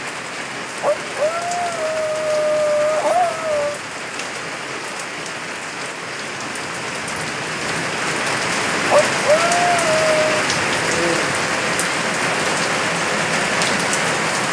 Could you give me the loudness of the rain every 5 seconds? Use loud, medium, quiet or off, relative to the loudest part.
medium, loud, loud.